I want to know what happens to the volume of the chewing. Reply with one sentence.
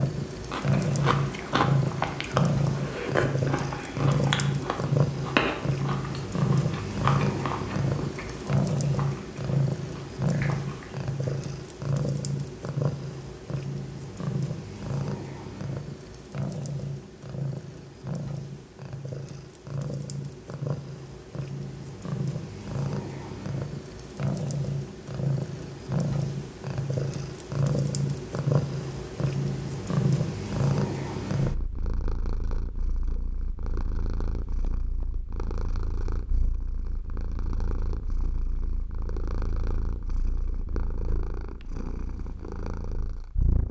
The loudness of the chewing goes down.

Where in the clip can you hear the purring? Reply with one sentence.
The purring can be heard from 0.0 to 43.6 s.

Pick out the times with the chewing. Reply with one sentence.
You can hear the chewing from 0.5 to 11.1 s.